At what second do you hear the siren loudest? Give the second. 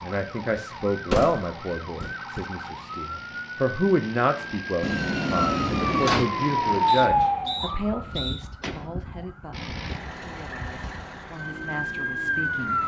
7 s.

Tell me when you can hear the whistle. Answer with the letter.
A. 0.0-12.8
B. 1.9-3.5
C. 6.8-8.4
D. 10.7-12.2
C.